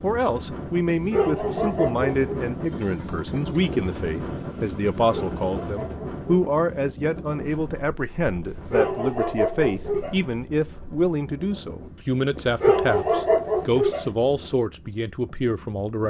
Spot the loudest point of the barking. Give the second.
13 s.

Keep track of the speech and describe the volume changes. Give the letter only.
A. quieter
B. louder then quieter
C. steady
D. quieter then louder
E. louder
C.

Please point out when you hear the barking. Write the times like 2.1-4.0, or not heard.
0.9-2.4, 5.0-6.2, 8.4-10.2, 12.3-14.1.